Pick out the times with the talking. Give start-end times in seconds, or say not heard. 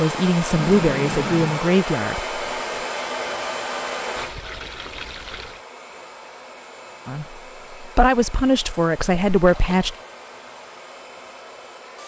0.0-2.4, 7.0-9.9.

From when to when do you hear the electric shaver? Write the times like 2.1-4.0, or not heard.
not heard.